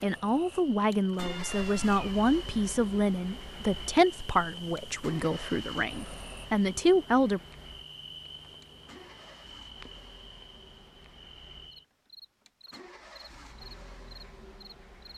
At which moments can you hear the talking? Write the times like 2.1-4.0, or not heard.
0.0-7.4.